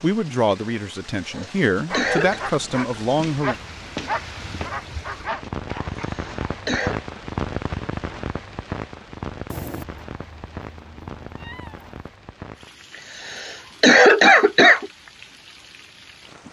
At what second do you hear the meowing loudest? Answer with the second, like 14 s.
10 s.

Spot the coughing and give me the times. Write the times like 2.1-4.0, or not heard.
1.4-2.4, 6.0-7.0, 13.2-14.9.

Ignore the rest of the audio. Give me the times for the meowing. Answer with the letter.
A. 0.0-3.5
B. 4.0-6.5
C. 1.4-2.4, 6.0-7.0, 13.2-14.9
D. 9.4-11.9
D.